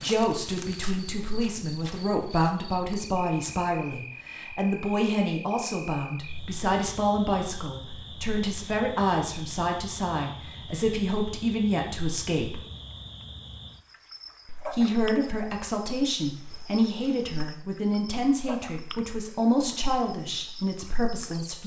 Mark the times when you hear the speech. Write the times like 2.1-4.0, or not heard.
0.0-12.6, 14.4-21.6.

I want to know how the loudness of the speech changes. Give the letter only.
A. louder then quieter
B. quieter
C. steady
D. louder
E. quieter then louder
C.